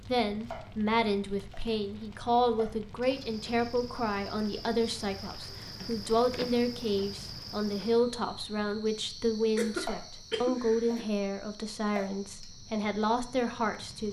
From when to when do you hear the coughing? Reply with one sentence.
You can hear the coughing from 9.3 to 11.1 s.